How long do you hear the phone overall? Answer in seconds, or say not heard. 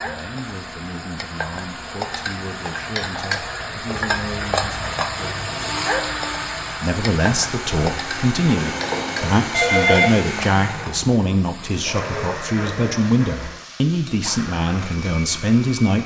2 s.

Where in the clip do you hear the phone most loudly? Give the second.
10 s.